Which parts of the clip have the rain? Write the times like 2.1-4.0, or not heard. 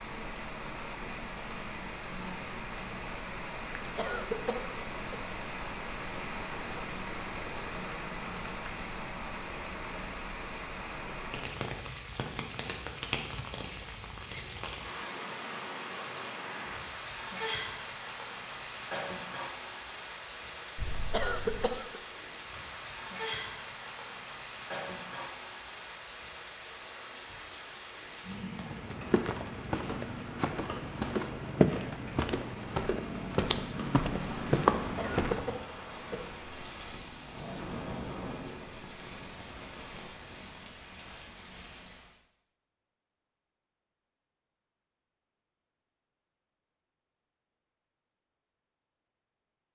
0.0-42.1.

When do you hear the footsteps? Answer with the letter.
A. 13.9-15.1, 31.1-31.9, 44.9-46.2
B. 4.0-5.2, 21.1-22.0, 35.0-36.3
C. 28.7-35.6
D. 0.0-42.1
C.